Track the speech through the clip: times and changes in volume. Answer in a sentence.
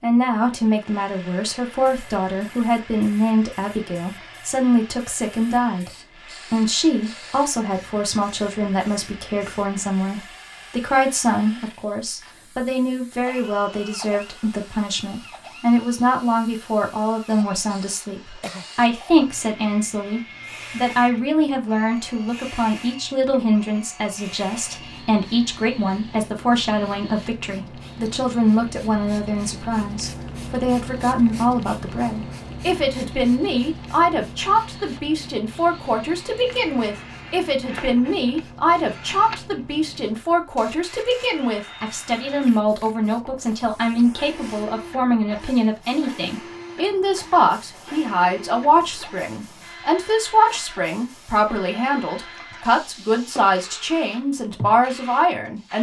The speech can be heard from 0.0 to 55.7 s, at a steady volume.